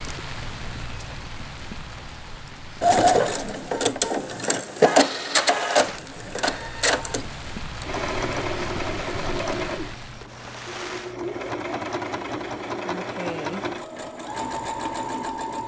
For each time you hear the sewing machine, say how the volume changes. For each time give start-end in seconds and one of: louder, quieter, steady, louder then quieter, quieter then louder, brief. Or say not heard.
2.8-15.6 quieter.